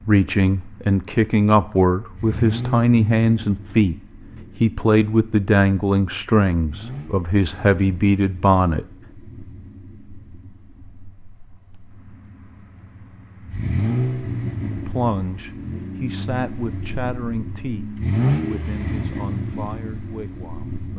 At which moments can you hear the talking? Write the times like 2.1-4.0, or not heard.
0.1-8.8, 14.8-20.9.